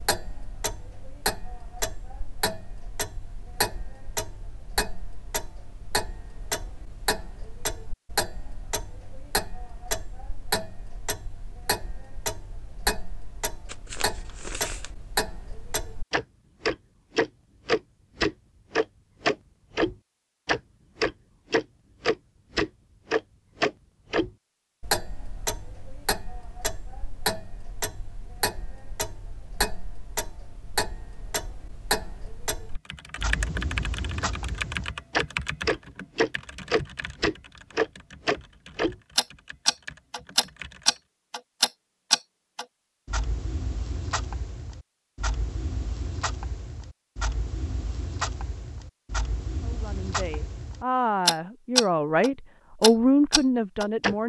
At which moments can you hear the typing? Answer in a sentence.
You can hear the typing from 32.8 to 41.0 s.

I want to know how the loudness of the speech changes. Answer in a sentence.
The volume of the speech goes up.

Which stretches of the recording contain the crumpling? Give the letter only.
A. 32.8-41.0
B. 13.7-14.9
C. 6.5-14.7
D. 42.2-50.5
B.